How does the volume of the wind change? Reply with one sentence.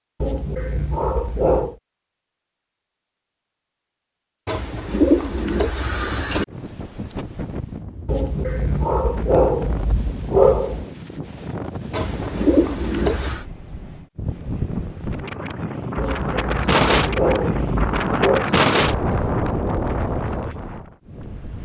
The volume of the wind goes up.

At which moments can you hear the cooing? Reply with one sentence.
The cooing can be heard from 4.5 to 6.5 s and from 11.9 to 13.4 s.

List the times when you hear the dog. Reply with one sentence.
The dog can be heard from 0.2 to 1.8 s, from 8.1 to 10.8 s and from 15.9 to 18.4 s.